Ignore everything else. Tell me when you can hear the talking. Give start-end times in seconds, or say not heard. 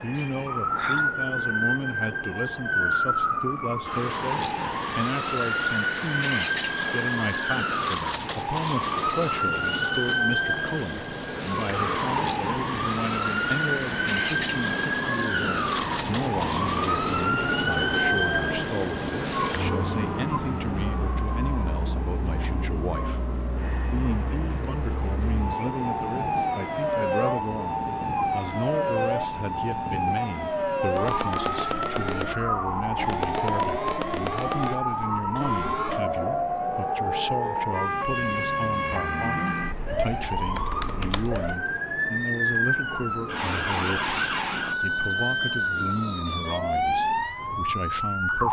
0.0-48.4.